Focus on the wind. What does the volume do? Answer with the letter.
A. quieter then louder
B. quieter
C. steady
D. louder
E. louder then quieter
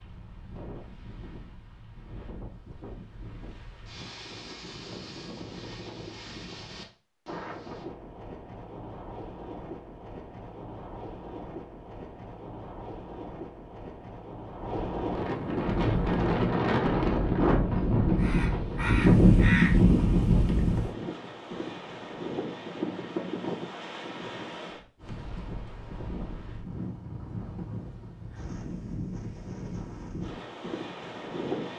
E.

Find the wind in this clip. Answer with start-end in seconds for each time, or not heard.
0.0-31.7.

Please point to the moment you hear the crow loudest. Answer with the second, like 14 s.
19 s.